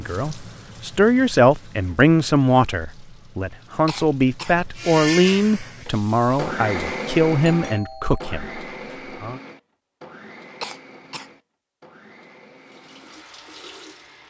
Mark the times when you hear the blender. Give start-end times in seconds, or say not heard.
4.8-14.2.